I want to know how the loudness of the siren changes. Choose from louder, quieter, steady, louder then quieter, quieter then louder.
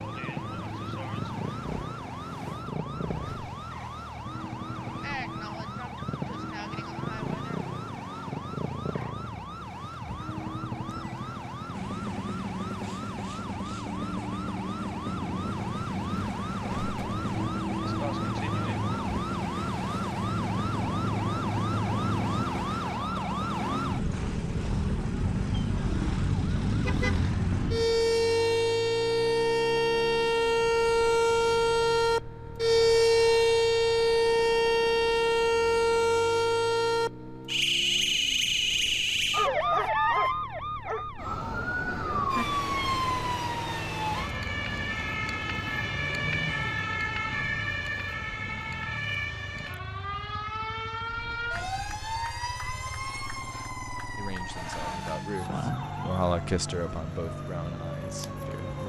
louder then quieter.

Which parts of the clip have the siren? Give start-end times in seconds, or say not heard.
0.0-58.8.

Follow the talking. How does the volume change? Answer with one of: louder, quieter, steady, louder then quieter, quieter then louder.
louder then quieter.